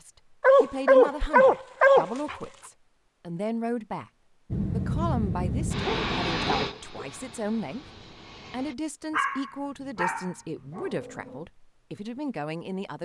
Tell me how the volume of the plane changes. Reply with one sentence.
The loudness of the plane goes down.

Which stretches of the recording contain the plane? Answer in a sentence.
The plane can be heard from 4.5 to 8.8 s.